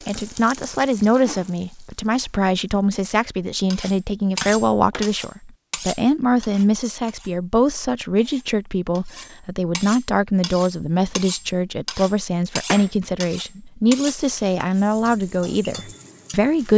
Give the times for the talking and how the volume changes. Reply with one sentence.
The talking can be heard from 0.1 to 16.7 s, at a steady volume.